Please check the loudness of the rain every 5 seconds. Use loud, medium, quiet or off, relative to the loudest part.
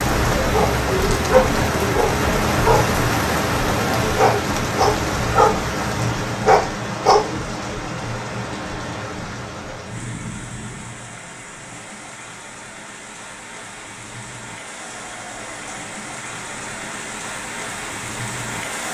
loud, medium, quiet, medium.